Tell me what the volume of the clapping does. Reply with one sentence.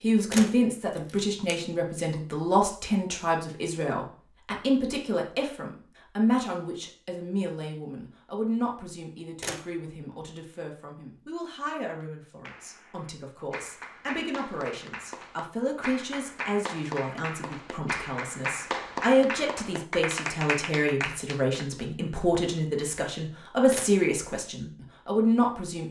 The volume of the clapping goes up.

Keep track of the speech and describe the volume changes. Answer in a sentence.
The loudness of the speech goes down, then up.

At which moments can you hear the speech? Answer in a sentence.
The speech can be heard from 0.0 to 25.8 s.